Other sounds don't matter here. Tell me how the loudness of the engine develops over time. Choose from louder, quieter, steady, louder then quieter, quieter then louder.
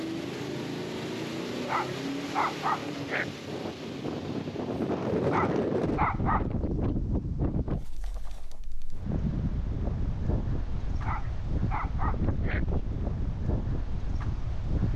quieter.